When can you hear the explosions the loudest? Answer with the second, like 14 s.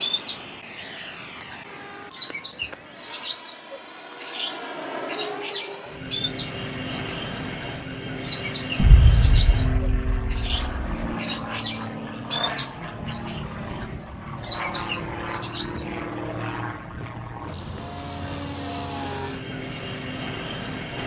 9 s.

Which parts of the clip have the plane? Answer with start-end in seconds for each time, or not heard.
0.0-21.0.